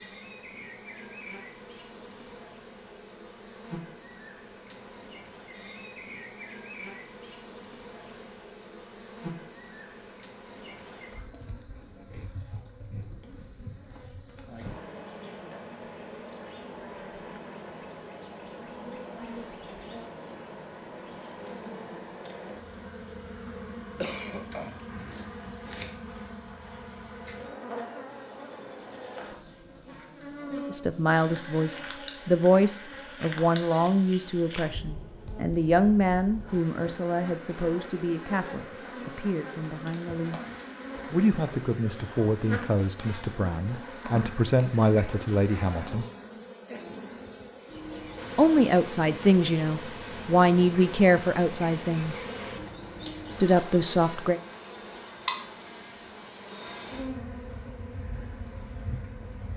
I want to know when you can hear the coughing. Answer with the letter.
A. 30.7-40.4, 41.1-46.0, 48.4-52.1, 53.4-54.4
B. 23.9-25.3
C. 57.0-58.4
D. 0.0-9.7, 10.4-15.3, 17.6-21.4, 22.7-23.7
B.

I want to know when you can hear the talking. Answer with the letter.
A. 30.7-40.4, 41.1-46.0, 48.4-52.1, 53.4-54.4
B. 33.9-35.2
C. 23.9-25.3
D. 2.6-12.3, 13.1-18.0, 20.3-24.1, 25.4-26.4
A.